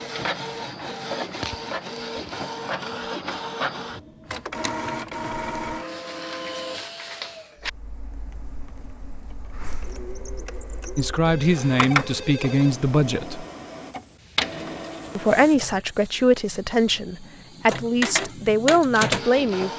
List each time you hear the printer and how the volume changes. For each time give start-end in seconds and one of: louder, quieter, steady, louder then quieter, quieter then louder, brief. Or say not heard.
0.0-19.7 quieter then louder.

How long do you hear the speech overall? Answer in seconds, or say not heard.
7 s.